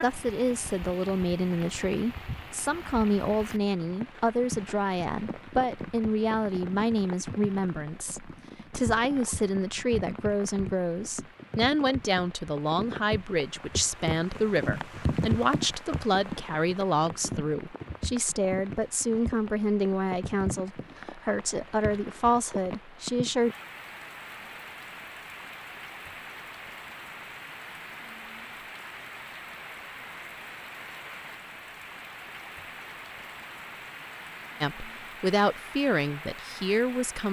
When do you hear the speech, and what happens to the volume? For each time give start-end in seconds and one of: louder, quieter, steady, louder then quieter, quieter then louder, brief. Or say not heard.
0.0-23.6 steady
34.6-37.2 brief.